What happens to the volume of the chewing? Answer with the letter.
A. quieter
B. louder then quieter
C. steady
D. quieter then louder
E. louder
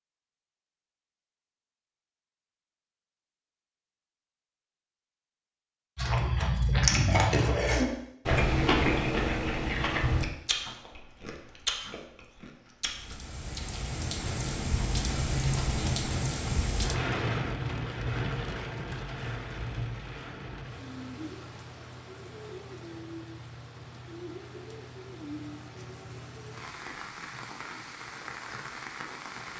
D.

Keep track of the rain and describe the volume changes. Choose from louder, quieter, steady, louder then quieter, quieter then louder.
quieter.